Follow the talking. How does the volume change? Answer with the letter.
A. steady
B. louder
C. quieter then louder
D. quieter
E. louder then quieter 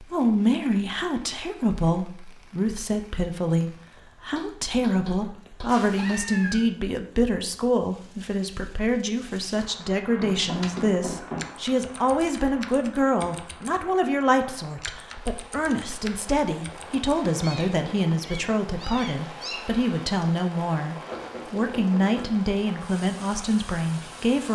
A.